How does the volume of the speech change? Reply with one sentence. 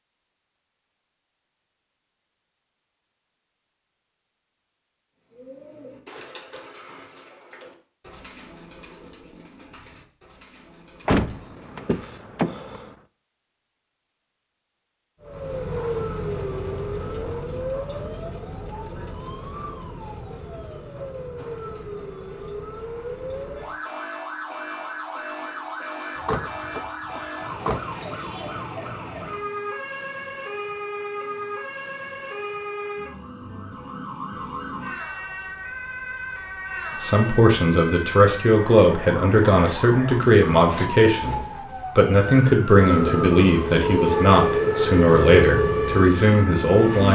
The volume of the speech stays about the same.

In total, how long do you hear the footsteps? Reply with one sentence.
The footsteps can't be heard in this clip.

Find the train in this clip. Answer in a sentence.
You can hear the train from 42.8 to 47.0 s.